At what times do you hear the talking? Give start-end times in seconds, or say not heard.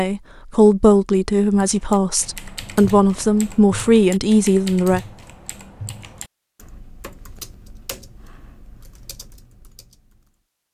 0.0-5.0.